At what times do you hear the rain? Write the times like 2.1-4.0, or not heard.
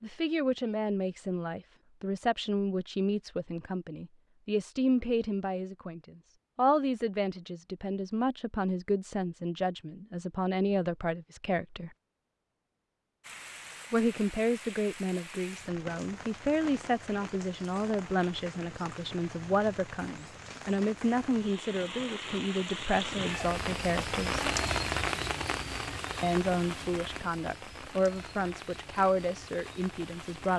13.2-30.5.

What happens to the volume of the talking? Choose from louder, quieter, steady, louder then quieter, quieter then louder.
steady.